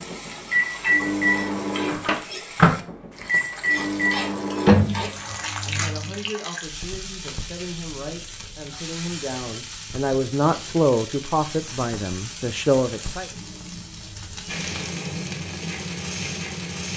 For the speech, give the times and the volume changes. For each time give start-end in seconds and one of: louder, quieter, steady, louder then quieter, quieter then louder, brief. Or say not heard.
5.0-13.3 louder.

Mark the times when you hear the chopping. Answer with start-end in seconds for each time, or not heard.
not heard.